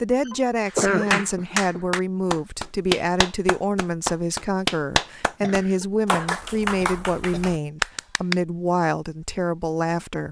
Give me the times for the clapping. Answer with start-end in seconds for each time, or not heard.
0.7-8.3.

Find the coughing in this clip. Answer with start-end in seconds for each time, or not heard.
0.2-1.8, 5.4-7.5.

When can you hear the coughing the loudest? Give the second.
1 s.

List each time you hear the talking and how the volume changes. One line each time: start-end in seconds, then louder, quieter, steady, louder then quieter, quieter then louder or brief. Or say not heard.
0.0-10.2 steady.